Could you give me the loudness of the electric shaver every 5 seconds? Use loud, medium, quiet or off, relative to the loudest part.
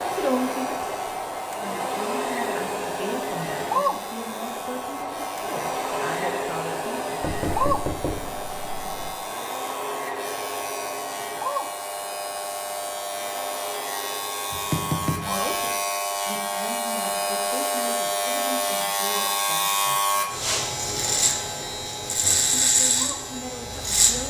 quiet, quiet, medium, loud, loud.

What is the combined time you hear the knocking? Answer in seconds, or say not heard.
3 s.